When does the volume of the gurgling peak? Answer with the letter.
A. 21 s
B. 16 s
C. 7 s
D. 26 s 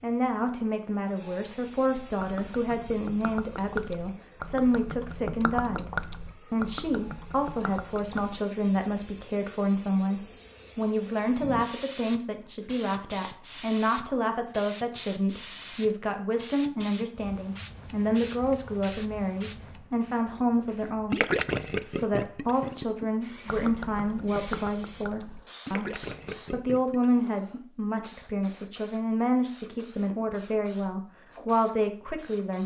A.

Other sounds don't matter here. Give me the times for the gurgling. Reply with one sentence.
You can hear the gurgling from 2.1 to 8.4 s and from 20.8 to 27.1 s.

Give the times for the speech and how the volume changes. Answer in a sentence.
The speech can be heard from 0.0 to 32.6 s, at a steady volume.